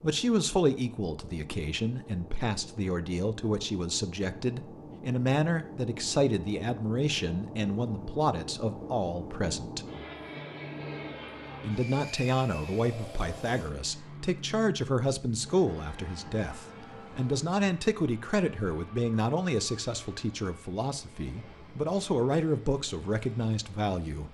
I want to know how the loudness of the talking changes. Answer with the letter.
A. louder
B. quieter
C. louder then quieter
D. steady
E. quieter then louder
D.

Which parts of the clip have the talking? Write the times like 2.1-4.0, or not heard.
0.0-9.8, 11.6-24.2.